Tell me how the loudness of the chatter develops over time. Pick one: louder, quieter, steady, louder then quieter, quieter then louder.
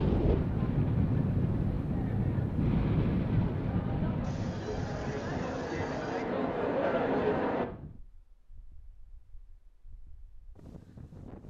louder.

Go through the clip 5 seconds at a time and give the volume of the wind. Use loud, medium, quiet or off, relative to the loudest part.
loud, quiet, quiet.